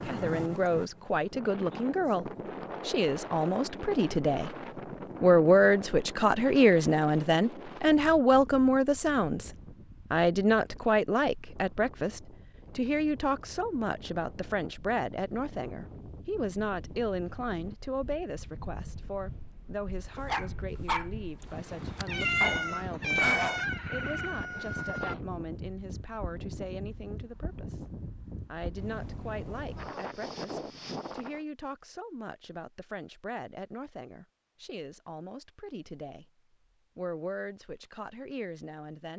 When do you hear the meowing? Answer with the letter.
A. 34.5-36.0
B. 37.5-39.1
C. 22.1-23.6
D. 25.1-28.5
C.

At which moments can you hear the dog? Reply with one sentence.
The dog can be heard from 20.1 to 23.6 s.